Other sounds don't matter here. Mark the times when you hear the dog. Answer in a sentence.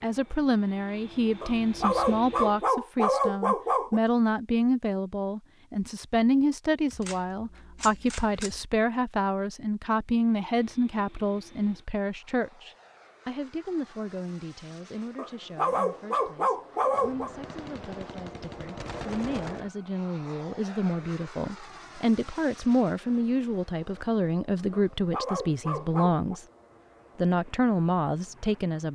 You can hear the dog from 1.4 to 4.0 s, from 15.2 to 17.3 s and from 24.7 to 26.4 s.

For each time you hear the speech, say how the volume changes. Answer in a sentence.
The speech can be heard from 0.0 to 26.4 s, getting quieter then louder; and briefly from 27.1 to 28.8 s.